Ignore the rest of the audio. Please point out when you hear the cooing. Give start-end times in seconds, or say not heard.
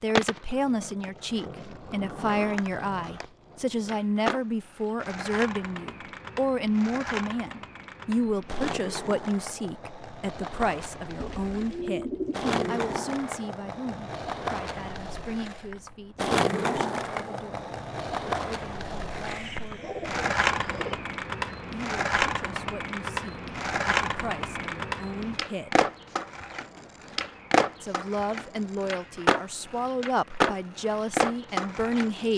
11.2-12.8, 19.2-21.1.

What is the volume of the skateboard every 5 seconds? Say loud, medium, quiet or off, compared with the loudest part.
medium, medium, medium, loud, loud, loud, loud.